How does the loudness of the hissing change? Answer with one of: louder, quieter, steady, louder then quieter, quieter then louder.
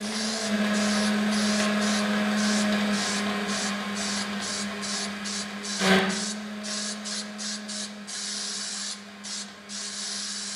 steady.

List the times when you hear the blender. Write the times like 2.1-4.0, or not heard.
0.0-10.5.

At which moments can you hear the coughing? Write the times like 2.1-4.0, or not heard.
not heard.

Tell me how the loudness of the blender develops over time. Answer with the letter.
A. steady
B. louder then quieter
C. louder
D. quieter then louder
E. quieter
E.